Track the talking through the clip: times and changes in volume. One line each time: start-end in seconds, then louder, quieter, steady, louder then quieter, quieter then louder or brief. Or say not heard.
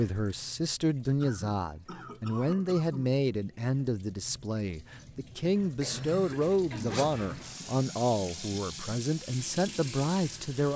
0.0-10.7 steady.